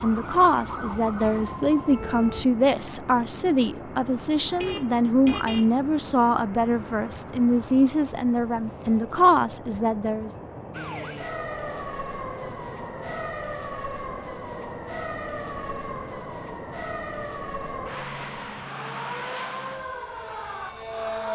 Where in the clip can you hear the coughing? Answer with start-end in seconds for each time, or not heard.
not heard.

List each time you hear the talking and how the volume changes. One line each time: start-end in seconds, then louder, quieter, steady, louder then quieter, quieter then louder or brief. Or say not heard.
0.0-10.3 steady.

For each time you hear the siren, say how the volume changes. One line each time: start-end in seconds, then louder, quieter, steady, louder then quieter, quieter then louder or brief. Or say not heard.
0.0-2.5 brief
10.7-21.2 steady.